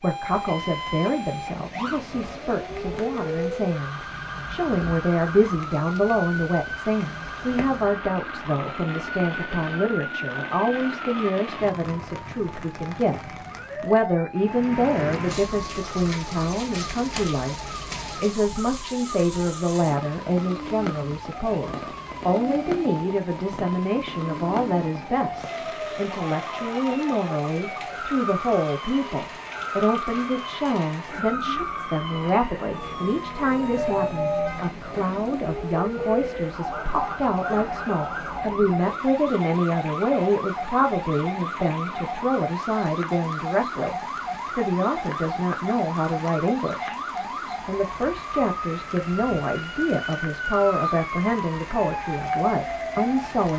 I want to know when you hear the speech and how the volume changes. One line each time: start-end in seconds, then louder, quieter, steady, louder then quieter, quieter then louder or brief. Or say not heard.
0.0-47.0 steady
47.6-53.5 steady.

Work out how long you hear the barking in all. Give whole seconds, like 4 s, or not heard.
not heard.